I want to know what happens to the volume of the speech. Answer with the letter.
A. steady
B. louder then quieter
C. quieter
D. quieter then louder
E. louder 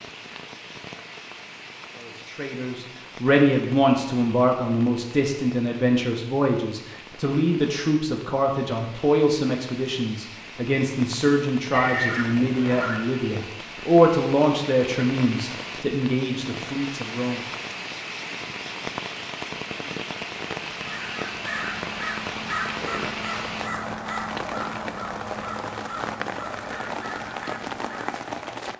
A.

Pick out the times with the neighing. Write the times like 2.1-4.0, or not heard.
11.7-13.0.